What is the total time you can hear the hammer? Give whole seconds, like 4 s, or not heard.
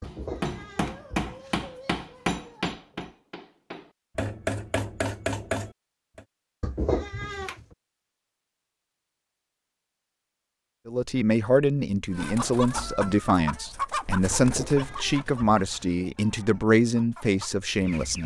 6 s.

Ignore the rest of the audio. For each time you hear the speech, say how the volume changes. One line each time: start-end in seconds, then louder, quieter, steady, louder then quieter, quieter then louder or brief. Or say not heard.
10.8-18.2 steady.